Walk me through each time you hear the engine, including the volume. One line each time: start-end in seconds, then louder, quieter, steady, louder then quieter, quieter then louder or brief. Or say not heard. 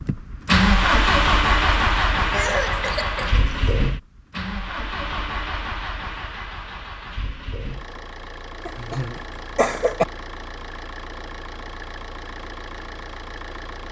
0.0-13.8 quieter.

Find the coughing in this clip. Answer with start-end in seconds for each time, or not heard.
2.3-3.8, 8.7-10.1.